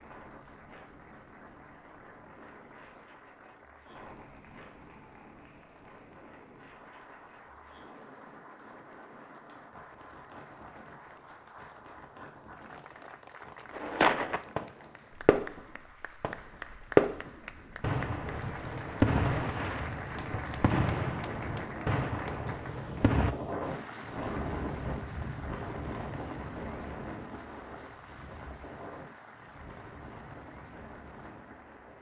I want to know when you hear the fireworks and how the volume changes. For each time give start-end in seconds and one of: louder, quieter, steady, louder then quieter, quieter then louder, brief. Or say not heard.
13.7-15.6 brief
16.2-23.4 quieter.